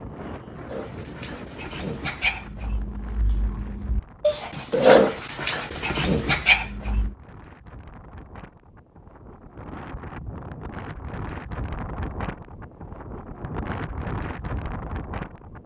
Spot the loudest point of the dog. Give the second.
5 s.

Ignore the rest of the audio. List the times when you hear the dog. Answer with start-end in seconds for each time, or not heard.
0.7-7.2.